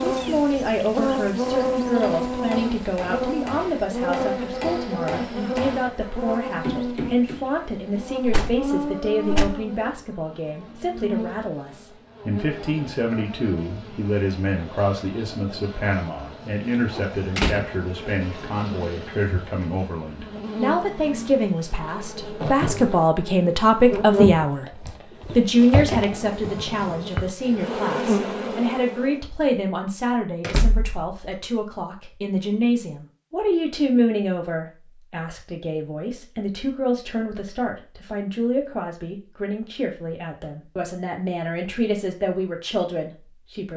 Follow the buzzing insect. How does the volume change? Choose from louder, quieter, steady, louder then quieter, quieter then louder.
quieter then louder.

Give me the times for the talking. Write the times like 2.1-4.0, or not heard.
0.0-43.7.